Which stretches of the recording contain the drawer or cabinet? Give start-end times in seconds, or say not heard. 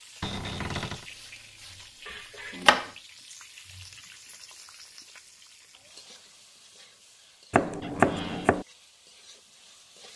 0.2-1.1, 7.8-8.6.